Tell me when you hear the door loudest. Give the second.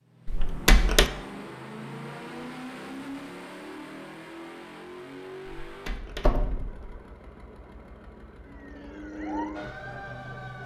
1 s.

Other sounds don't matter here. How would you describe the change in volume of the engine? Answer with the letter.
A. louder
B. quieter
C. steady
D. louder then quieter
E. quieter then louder
B.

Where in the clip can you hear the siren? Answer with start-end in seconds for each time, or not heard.
8.4-10.6.